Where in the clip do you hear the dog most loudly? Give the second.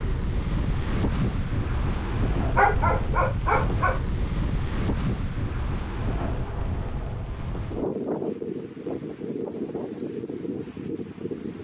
3 s.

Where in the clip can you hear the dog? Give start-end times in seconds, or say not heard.
2.5-4.0.